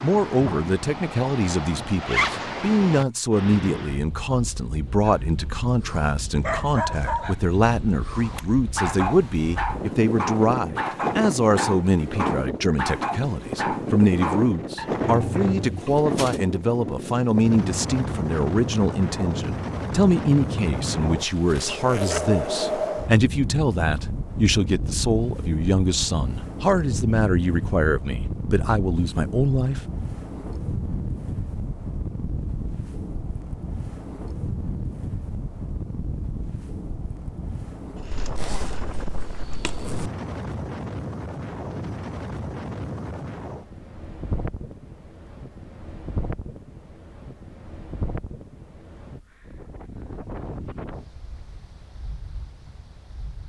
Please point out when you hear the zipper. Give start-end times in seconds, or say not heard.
2.0-2.5, 21.1-22.9, 38.1-40.1.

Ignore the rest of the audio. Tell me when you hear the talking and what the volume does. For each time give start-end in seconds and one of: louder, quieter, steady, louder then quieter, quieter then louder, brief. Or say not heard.
0.0-29.8 steady.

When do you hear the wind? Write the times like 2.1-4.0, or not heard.
0.0-53.4.